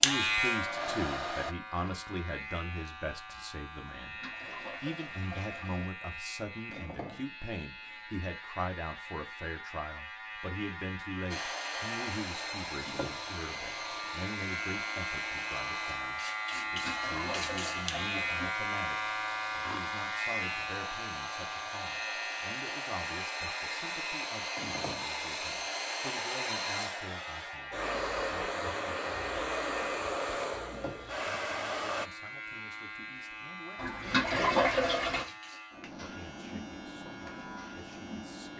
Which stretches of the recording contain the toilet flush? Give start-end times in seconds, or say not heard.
4.0-5.9, 16.5-18.5, 33.8-35.2.